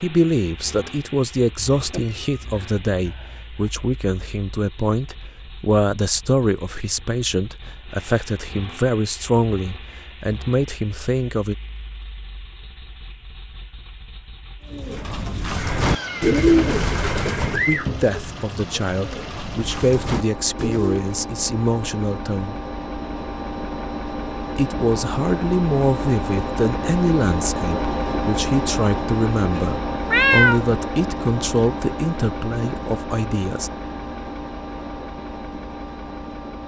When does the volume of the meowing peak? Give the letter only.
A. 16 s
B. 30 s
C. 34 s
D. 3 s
B.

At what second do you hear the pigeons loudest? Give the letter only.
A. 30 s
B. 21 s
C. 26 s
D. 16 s
D.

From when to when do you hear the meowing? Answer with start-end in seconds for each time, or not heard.
1.8-3.7, 15.6-17.6, 29.9-30.6.